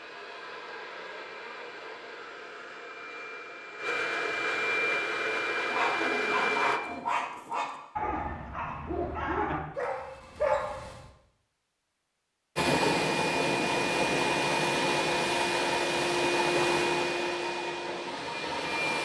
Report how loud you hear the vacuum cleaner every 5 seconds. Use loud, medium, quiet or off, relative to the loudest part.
medium, loud, loud, loud.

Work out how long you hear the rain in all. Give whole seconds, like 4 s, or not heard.
not heard.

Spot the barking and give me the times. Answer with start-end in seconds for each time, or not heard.
5.7-11.1.